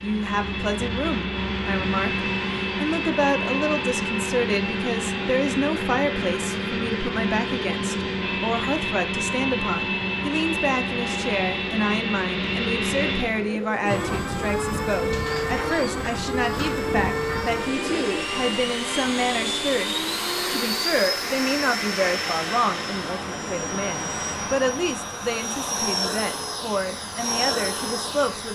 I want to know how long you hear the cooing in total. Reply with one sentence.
The cooing can be heard for 5 seconds in total.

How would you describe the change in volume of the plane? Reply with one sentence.
The volume of the plane stays about the same.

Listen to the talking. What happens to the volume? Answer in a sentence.
The loudness of the talking stays about the same.